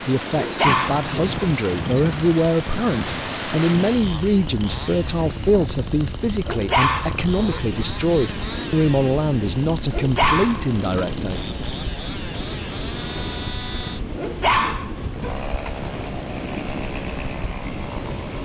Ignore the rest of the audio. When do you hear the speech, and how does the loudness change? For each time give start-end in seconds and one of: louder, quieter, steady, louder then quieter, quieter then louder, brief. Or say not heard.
0.1-11.4 steady.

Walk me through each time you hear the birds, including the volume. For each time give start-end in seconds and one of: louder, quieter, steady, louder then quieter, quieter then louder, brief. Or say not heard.
not heard.